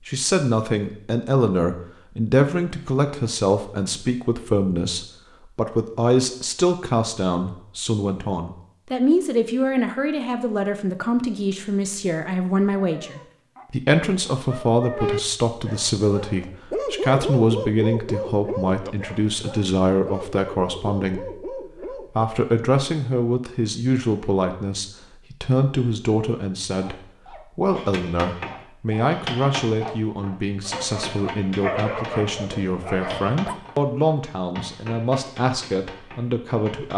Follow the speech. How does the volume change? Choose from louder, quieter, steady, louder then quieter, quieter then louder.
steady.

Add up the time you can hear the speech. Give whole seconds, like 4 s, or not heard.
37 s.